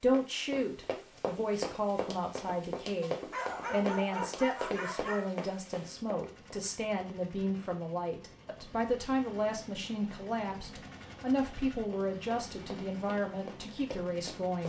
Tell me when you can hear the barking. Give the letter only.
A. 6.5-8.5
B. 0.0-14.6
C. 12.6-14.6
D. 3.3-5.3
D.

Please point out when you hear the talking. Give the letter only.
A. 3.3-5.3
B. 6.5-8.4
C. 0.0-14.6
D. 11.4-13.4
C.